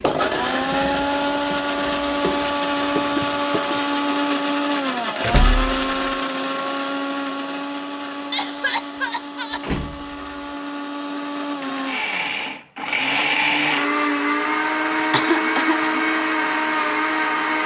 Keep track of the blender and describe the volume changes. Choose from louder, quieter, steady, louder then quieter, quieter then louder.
quieter then louder.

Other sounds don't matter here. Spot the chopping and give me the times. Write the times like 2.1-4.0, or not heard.
not heard.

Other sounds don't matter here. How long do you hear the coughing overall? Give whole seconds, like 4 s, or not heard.
3 s.